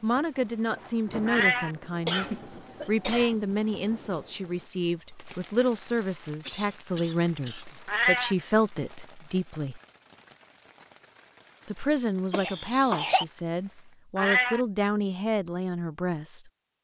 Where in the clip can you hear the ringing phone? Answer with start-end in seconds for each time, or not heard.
not heard.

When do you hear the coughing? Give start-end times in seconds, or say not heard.
2.0-3.4, 6.4-7.8, 12.3-13.2.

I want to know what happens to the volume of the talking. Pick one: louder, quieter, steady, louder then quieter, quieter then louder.
steady.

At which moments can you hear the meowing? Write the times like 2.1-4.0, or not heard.
1.2-1.7, 7.8-8.3, 14.2-14.6.